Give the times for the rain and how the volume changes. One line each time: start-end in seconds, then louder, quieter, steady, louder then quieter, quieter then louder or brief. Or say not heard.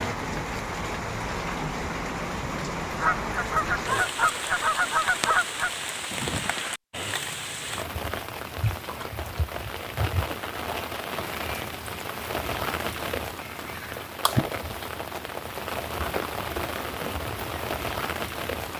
0.0-18.7 steady.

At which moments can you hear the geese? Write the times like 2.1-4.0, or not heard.
3.0-5.7.